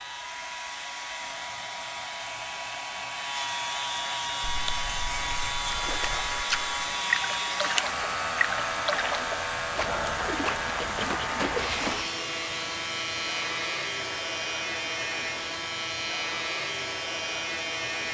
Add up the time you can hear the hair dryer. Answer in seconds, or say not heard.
18 s.